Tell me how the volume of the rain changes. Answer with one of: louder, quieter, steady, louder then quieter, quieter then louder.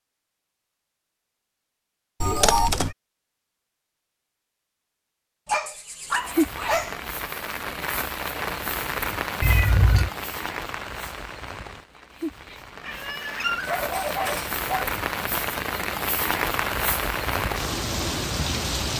quieter then louder.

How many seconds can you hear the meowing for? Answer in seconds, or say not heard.
3 s.